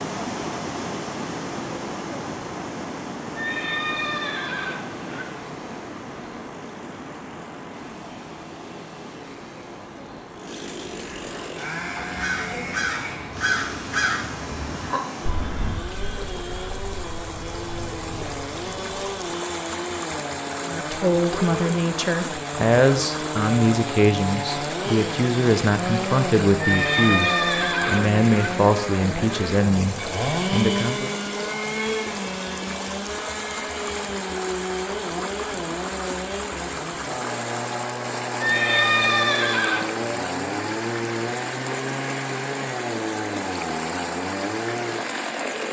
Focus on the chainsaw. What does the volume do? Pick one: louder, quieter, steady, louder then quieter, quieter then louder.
louder.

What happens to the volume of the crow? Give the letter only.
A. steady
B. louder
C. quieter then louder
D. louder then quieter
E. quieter
E.